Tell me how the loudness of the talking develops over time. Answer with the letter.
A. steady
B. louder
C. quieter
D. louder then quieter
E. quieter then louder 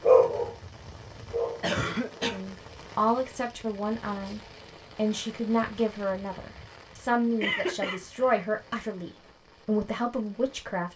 A.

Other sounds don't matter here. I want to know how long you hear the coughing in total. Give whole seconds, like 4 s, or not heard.
2 s.